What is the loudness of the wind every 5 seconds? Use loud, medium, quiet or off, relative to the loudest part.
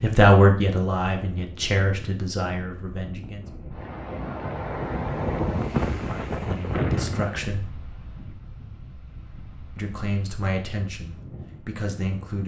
medium, loud, quiet.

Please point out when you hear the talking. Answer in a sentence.
You can hear the talking from 0.0 to 3.5 s, from 6.0 to 7.7 s and from 9.8 to 12.4 s.